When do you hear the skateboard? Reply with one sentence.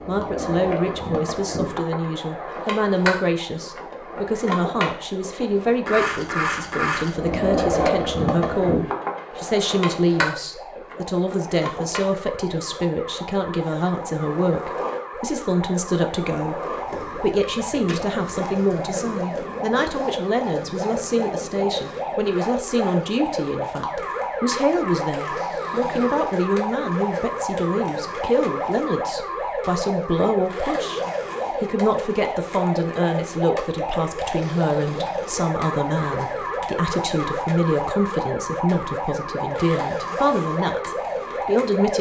You can hear the skateboard from 0.0 to 41.9 s.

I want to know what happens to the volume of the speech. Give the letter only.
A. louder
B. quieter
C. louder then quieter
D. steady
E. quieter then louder
D.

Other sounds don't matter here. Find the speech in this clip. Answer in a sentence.
You can hear the speech from 0.1 to 41.9 s.